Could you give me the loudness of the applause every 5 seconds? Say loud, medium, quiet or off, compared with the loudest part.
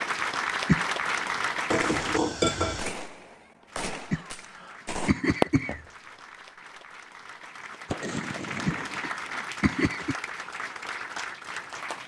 loud, medium, medium.